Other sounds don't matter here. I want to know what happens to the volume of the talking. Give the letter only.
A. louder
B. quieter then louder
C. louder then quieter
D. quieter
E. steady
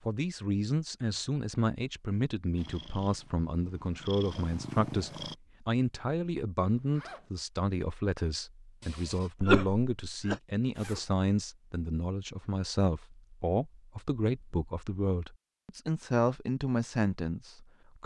E.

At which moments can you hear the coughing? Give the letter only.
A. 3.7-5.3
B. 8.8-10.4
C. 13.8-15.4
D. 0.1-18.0
B.